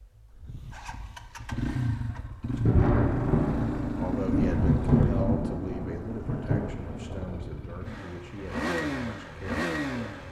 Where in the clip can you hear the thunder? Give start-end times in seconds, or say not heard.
2.6-7.5.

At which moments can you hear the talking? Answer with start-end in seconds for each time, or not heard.
3.9-10.2.